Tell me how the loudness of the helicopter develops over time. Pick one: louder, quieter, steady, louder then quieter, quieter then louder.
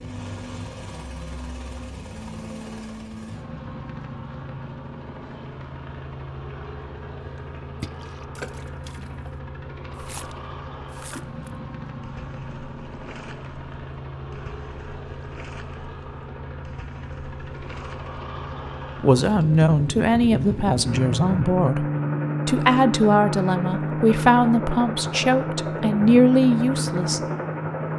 louder.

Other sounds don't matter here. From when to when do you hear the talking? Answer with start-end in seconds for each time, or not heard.
19.0-21.9, 22.4-27.2.